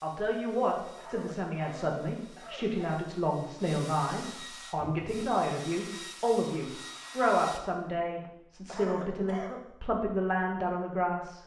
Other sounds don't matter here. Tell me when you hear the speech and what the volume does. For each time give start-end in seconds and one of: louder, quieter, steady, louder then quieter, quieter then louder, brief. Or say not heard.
0.0-11.4 steady.